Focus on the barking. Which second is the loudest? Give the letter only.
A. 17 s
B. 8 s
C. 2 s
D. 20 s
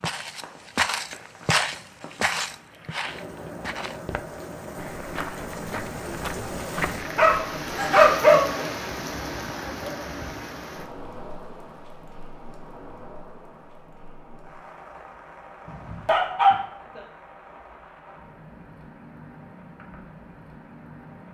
B.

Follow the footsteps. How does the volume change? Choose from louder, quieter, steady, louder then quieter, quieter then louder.
quieter.